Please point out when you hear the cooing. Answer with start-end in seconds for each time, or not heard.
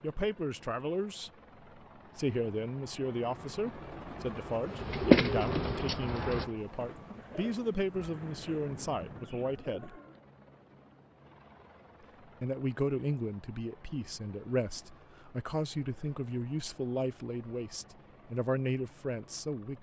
4.7-10.2.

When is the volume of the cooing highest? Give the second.
5 s.